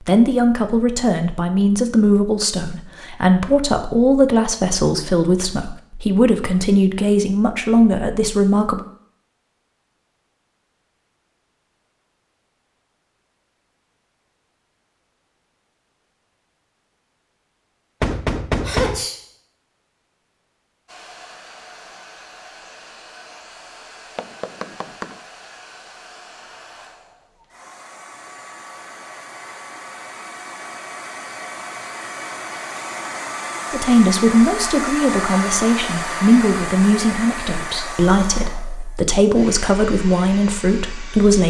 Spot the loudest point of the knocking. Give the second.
19 s.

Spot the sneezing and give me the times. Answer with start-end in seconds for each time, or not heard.
18.6-19.2.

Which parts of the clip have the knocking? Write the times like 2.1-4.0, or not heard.
18.0-19.1, 24.1-25.2.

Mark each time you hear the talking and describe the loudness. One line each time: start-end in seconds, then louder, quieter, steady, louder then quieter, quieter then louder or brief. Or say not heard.
0.0-8.8 steady
33.7-41.4 steady.